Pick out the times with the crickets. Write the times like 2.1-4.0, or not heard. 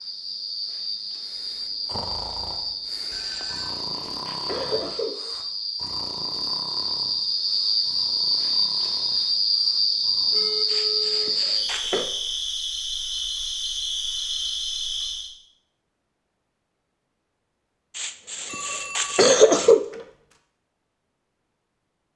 0.0-15.3.